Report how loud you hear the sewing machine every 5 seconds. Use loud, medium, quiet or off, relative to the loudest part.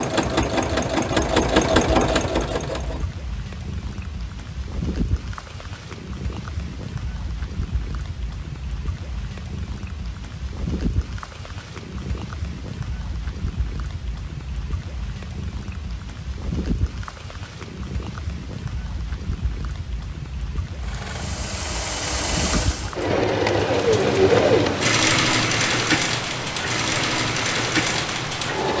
loud, off, off, off, loud, loud.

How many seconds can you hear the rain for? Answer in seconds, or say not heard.
29 s.